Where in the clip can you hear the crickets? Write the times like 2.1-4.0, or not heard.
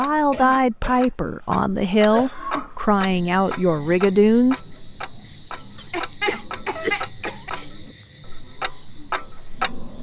2.8-9.9.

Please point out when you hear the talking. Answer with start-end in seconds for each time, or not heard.
0.0-4.6.